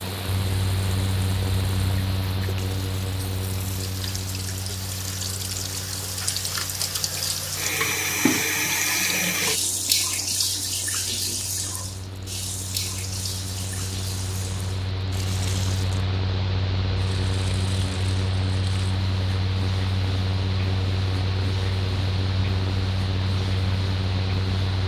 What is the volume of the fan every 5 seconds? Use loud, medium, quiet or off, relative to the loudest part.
loud, quiet, medium, loud, loud.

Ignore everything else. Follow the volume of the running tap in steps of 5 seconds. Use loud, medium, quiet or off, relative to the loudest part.
quiet, loud, medium, quiet, quiet.